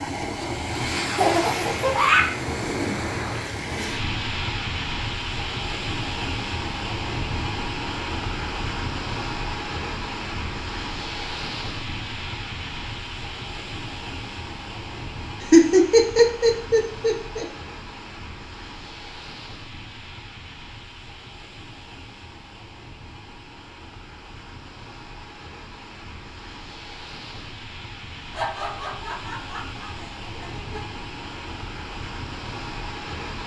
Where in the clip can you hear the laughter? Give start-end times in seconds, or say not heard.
1.1-2.3, 15.4-17.4, 28.3-30.9.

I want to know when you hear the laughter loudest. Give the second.
16 s.